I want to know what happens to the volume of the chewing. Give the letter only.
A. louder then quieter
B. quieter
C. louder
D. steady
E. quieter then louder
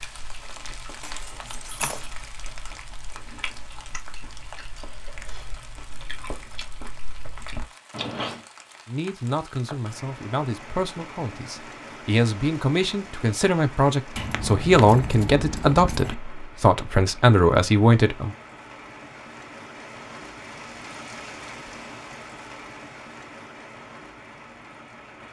C.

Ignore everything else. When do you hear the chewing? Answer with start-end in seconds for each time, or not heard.
0.0-8.4.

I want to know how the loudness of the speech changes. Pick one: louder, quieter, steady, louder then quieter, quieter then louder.
louder.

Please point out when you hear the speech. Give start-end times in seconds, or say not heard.
8.8-18.3.